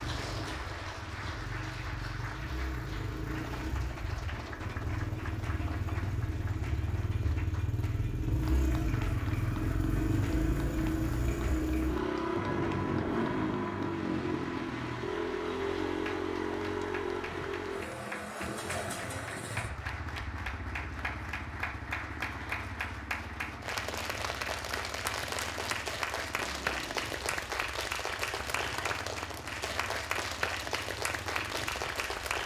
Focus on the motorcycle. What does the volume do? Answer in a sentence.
The volume of the motorcycle goes up, then down.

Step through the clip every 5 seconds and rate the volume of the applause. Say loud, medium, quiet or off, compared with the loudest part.
medium, quiet, quiet, medium, loud, loud, loud.